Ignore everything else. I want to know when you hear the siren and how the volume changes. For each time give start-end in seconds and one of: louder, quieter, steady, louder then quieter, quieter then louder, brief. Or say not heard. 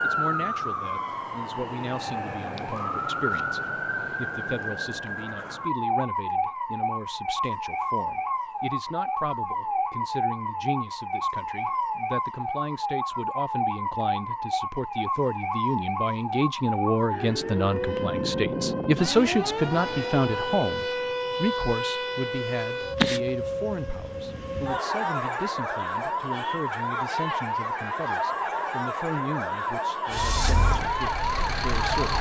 0.0-32.1 steady.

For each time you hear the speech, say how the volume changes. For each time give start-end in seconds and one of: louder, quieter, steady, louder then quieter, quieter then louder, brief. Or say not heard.
0.0-32.1 louder then quieter.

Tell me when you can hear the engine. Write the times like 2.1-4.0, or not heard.
30.1-32.1.